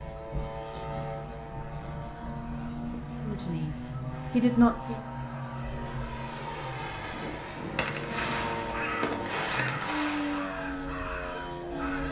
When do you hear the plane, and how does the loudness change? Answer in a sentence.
You can hear the plane from 0.0 to 12.0 s, at a steady volume.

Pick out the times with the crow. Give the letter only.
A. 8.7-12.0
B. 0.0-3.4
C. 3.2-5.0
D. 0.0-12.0
A.